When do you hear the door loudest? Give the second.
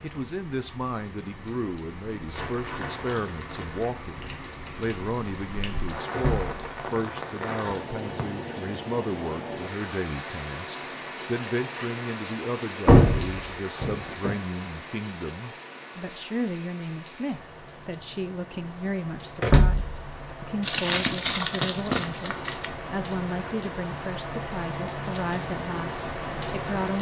13 s.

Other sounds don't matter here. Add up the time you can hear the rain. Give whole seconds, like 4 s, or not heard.
27 s.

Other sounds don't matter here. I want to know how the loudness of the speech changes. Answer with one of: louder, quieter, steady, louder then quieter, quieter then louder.
steady.